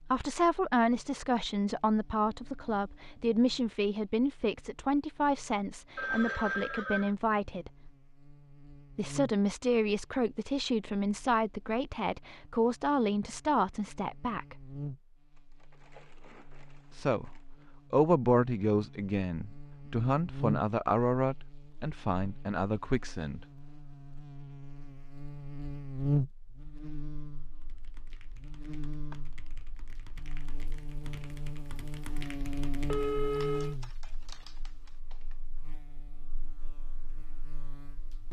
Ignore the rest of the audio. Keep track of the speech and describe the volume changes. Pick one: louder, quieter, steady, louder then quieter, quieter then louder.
steady.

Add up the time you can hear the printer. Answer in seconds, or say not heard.
not heard.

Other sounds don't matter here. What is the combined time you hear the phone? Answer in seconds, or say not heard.
2 s.